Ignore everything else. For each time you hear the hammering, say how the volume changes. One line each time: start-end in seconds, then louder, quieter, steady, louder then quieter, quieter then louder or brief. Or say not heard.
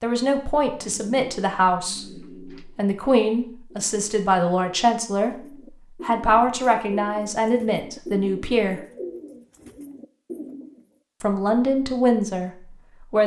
not heard.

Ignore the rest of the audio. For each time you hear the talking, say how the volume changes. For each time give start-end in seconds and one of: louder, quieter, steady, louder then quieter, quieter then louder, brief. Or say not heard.
0.0-5.3 steady
6.0-8.8 brief
11.2-13.2 brief.